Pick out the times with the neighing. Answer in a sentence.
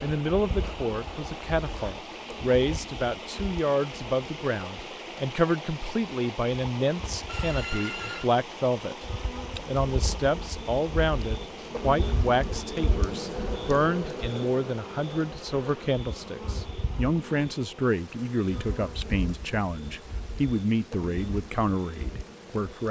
The neighing can be heard from 7.2 to 8.2 s.